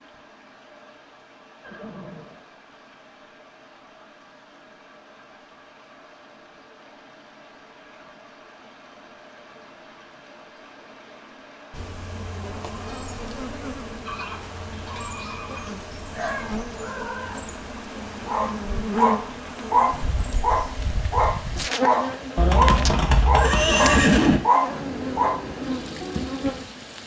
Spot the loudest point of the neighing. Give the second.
24 s.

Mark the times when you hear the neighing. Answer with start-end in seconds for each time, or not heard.
1.6-2.4, 14.1-15.8, 22.4-24.4.